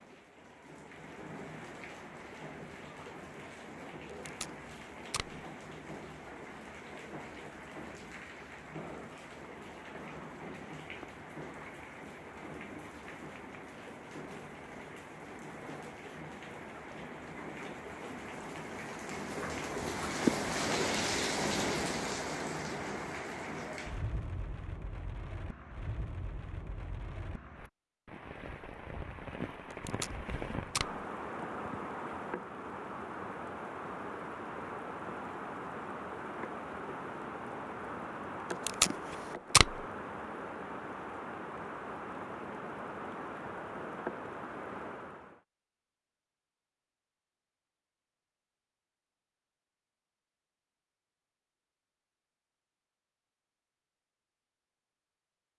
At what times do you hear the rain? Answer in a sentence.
The rain can be heard from 0.0 to 45.4 s.